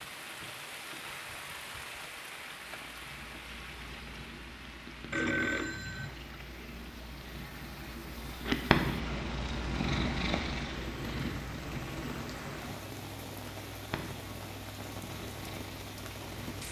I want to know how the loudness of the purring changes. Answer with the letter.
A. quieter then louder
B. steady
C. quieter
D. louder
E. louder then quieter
E.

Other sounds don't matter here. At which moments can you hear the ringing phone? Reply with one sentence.
You can hear the ringing phone from 5.1 to 6.1 s.